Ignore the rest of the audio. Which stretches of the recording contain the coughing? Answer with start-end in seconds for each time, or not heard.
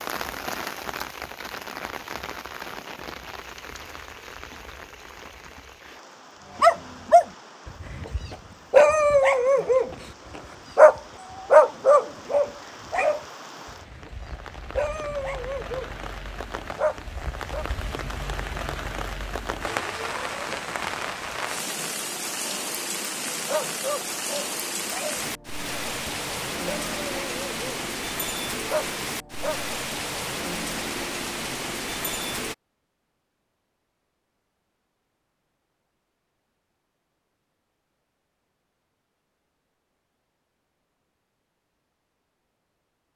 not heard.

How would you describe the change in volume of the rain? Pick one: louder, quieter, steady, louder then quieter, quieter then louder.
quieter then louder.